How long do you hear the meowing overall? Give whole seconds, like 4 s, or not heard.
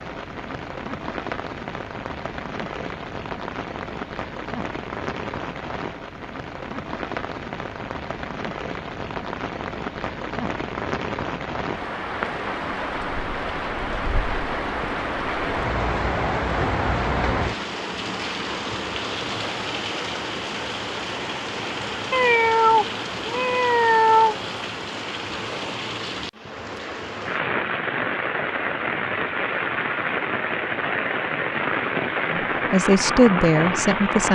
2 s.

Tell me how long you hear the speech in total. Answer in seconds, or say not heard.
2 s.